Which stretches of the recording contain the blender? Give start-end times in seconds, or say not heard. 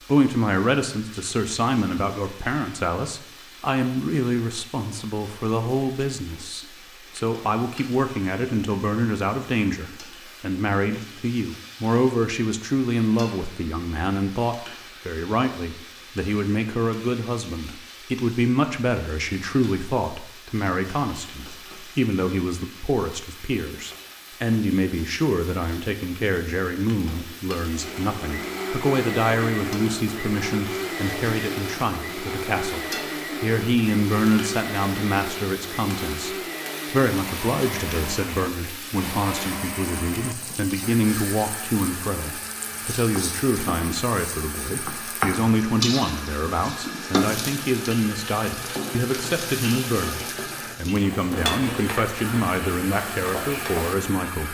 27.6-54.4.